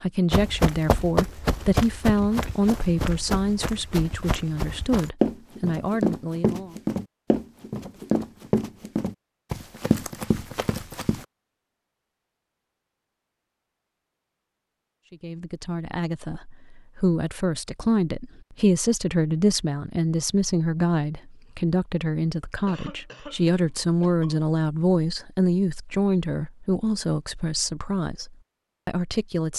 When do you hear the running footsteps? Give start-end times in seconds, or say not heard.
0.3-11.2.